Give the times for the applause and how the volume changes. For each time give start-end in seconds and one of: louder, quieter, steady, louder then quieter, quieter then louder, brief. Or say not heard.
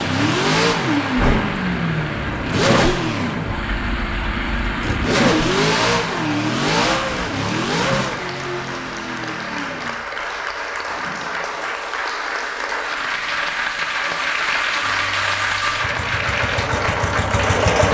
0.0-17.8 louder.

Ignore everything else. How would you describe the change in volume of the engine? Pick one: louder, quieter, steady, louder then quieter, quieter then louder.
quieter then louder.